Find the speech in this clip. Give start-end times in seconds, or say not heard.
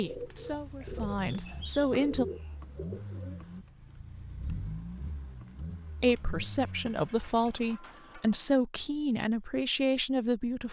0.0-2.2, 6.0-10.6.